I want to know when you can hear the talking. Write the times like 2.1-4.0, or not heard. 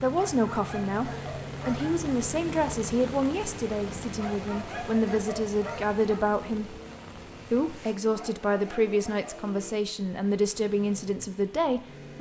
0.0-6.8, 7.5-12.1.